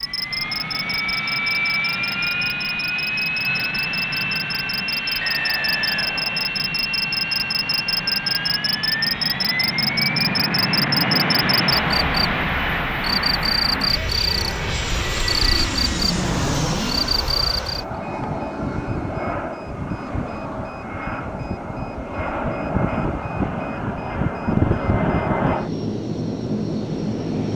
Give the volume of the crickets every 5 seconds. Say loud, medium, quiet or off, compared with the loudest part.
medium, loud, loud, loud, off, off.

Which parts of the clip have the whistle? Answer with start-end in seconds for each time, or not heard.
5.2-6.5.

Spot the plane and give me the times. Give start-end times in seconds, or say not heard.
0.0-27.5.